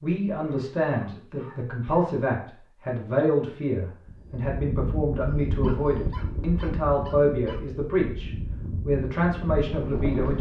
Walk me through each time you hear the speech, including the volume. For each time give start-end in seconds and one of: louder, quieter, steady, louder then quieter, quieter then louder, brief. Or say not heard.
0.0-10.3 steady.